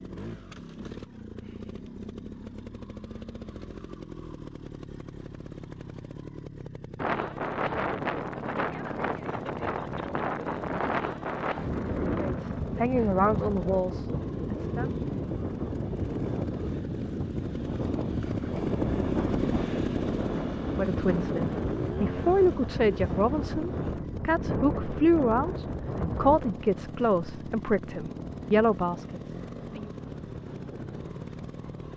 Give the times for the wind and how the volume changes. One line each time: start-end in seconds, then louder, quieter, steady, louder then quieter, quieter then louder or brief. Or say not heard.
7.0-31.9 quieter.